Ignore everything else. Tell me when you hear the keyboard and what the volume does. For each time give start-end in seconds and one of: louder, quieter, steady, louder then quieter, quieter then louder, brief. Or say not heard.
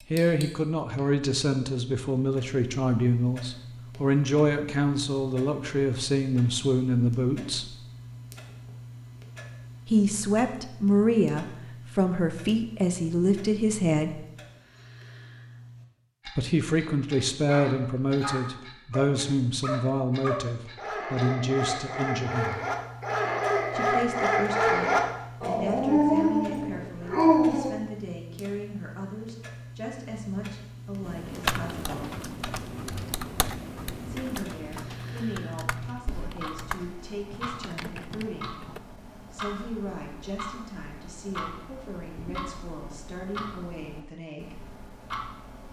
31.0-38.8 quieter.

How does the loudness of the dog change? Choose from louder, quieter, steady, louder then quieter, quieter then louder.
louder.